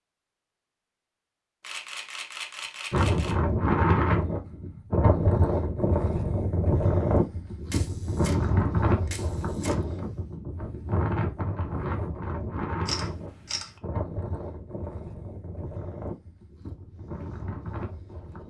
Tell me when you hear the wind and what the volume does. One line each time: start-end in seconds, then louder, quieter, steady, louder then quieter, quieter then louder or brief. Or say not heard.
2.9-18.4 quieter.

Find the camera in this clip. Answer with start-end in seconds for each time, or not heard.
1.6-3.4, 7.7-8.4, 9.1-9.8, 12.8-13.8.